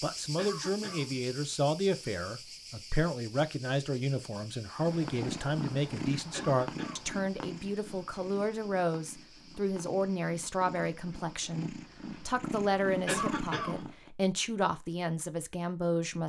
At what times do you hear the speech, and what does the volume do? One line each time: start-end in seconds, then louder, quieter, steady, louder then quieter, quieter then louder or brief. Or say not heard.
0.0-16.2 steady.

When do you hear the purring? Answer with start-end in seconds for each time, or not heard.
4.8-14.1.